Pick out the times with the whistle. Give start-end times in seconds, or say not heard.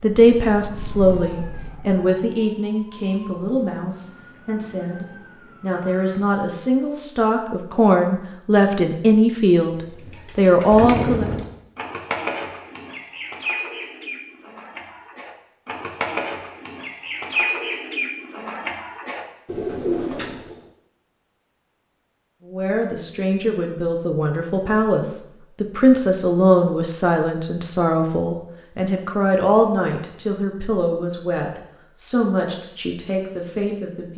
not heard.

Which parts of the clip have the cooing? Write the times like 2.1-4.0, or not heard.
10.1-20.6.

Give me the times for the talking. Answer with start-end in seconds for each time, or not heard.
0.0-11.2, 22.4-34.1.